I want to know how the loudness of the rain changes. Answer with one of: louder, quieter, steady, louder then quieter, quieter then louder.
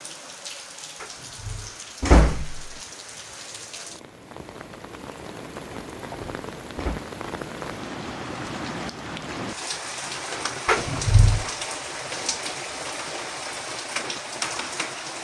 louder.